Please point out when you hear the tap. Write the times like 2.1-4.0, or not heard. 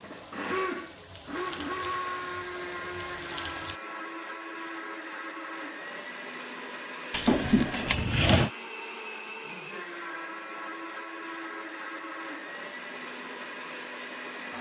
0.0-3.8.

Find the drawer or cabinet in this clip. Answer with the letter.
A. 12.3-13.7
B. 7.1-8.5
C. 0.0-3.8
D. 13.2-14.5
B.